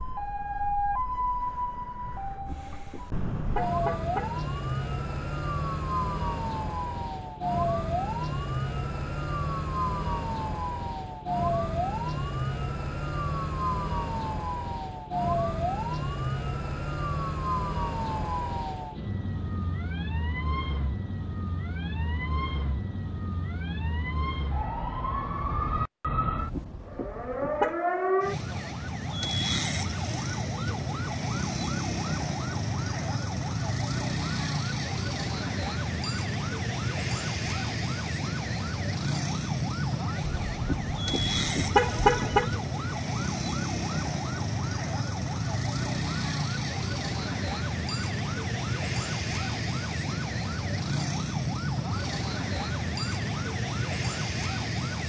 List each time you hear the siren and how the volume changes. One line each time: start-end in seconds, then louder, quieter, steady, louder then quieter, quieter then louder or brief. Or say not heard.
0.0-55.0 steady.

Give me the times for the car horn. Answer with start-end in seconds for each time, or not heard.
2.2-4.5, 26.3-27.8, 40.2-42.5.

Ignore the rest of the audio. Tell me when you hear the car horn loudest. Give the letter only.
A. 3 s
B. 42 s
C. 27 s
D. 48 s
B.